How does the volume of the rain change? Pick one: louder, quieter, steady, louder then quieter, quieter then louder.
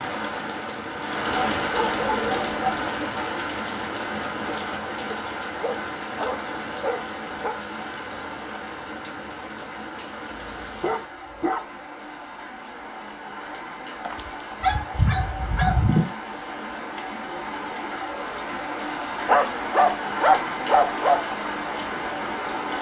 quieter then louder.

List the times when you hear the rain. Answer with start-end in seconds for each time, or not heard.
0.0-22.7.